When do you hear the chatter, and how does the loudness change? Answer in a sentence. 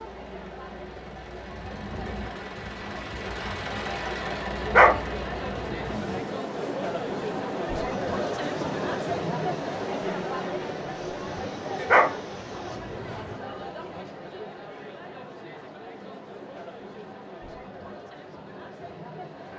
The chatter can be heard from 0.0 to 19.5 s, getting louder then quieter.